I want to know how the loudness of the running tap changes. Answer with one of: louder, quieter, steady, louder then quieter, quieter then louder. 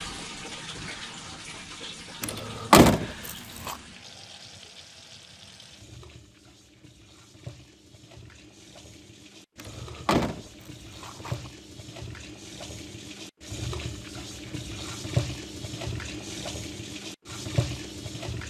quieter then louder.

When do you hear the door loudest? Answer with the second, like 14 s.
3 s.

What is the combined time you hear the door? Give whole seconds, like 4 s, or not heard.
3 s.